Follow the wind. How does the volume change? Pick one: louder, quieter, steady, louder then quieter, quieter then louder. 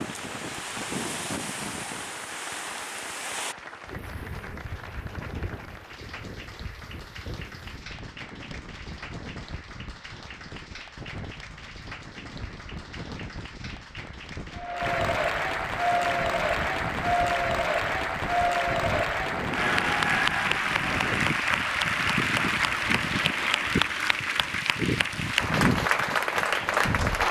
quieter then louder.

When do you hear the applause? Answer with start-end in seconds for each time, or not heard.
0.0-27.2.